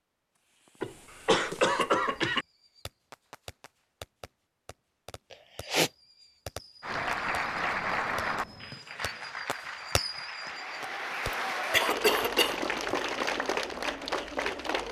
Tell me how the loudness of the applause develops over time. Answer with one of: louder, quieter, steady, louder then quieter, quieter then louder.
quieter then louder.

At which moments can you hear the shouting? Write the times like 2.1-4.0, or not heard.
not heard.